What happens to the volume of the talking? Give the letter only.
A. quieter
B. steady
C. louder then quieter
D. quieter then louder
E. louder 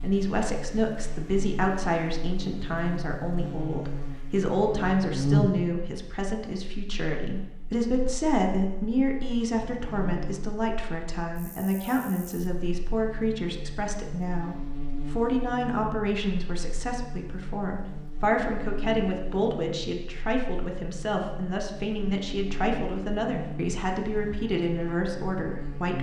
B.